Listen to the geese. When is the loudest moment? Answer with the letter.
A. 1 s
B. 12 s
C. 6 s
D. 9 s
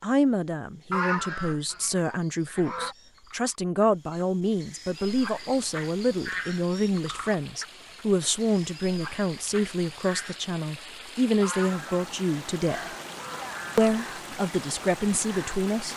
A.